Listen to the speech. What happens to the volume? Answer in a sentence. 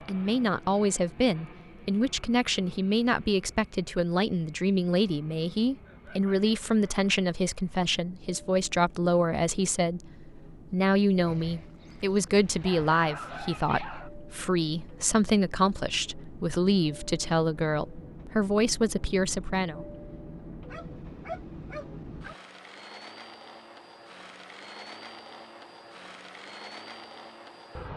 The loudness of the speech stays about the same.